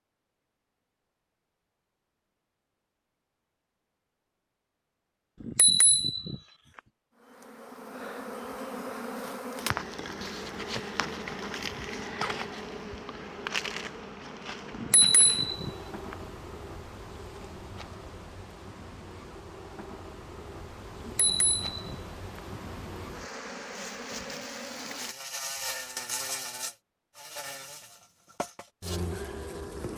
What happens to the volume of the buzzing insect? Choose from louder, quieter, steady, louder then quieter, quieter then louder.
quieter then louder.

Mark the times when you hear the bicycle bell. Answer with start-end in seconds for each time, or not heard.
5.4-6.3, 14.8-16.1, 21.0-22.4.